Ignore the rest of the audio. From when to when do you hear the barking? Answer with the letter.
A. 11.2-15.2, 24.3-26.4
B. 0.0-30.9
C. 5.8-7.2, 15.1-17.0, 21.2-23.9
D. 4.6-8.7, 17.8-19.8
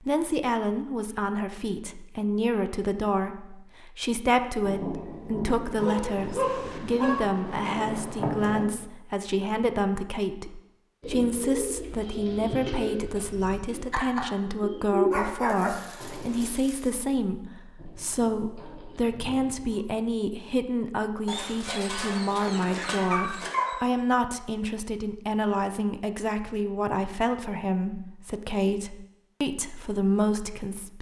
C.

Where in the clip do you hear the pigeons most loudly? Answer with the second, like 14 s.
15 s.